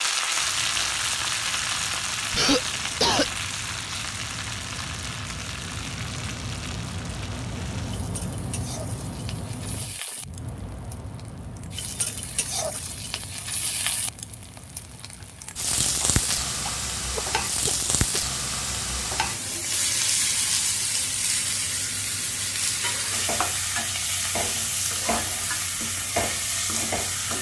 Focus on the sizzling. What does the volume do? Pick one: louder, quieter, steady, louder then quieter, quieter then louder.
quieter then louder.